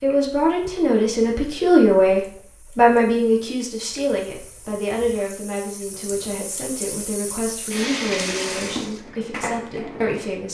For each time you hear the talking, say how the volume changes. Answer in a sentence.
The talking can be heard from 0.0 to 10.4 s, getting quieter.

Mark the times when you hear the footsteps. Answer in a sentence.
The footsteps can't be heard in this clip.